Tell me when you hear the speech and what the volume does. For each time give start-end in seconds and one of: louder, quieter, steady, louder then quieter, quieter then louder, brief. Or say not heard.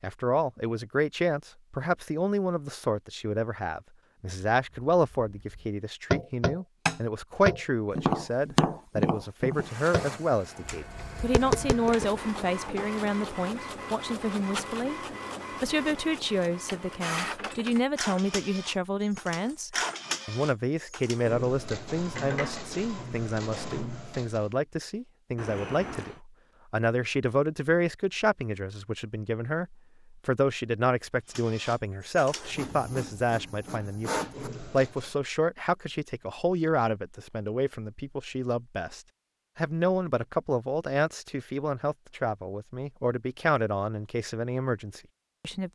0.0-15.0 steady
15.6-45.7 steady.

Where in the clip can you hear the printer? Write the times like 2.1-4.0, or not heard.
9.6-24.5, 31.3-35.1.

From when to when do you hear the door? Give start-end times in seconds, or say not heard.
25.4-26.2.